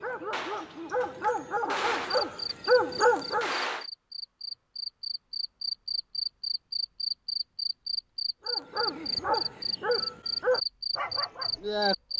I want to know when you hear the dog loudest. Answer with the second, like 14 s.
3 s.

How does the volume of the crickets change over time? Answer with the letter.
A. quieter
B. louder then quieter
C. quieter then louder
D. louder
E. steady
D.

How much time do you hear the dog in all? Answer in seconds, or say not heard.
7 s.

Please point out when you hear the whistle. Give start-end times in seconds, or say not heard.
not heard.